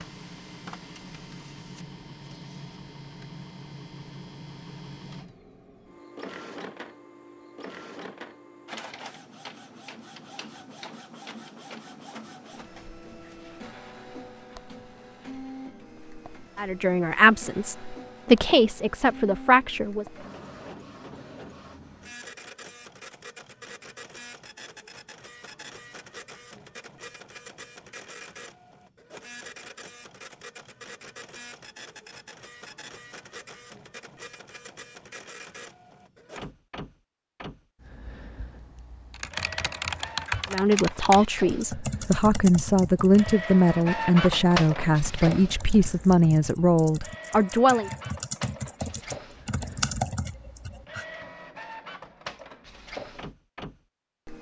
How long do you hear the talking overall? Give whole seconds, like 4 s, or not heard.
11 s.